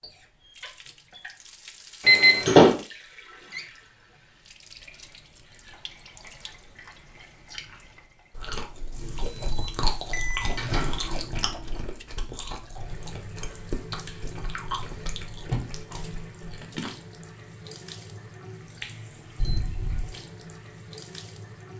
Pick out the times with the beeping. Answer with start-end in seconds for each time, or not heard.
2.0-2.6, 9.2-10.6, 19.4-20.1.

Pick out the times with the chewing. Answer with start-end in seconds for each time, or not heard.
7.2-16.9.